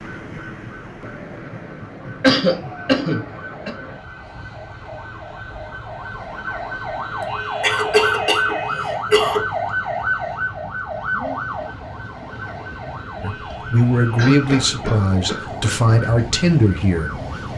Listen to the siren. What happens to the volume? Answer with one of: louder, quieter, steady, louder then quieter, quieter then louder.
louder then quieter.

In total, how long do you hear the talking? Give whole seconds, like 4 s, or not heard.
4 s.